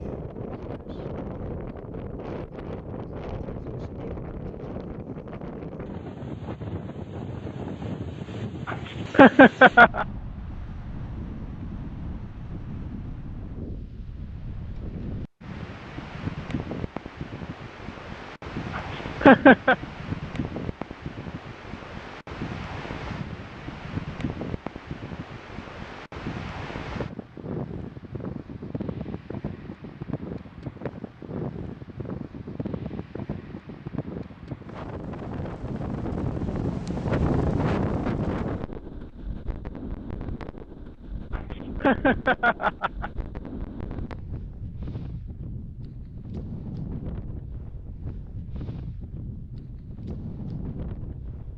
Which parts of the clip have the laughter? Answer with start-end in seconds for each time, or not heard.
8.7-10.1, 18.8-19.8, 41.4-43.1.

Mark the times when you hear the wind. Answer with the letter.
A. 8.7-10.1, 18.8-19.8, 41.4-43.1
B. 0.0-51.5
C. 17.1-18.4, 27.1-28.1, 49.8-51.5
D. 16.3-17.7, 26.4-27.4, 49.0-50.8
B.